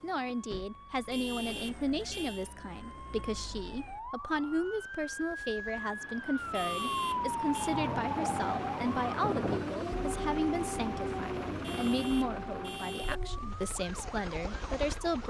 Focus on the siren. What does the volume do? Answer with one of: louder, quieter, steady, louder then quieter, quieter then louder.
louder then quieter.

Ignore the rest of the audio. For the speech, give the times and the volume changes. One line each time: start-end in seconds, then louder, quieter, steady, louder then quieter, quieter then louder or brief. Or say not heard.
0.0-15.2 steady.